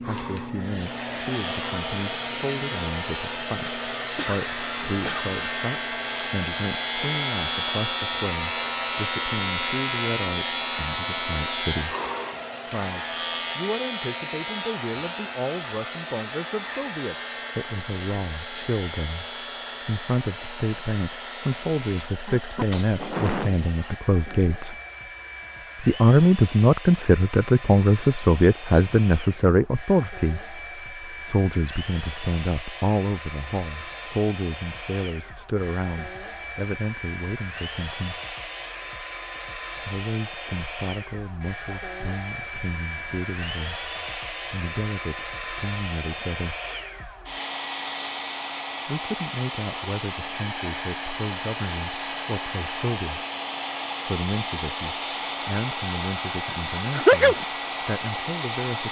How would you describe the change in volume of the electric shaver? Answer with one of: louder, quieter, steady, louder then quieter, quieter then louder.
louder then quieter.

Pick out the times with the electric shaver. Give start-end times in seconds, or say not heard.
0.0-22.1.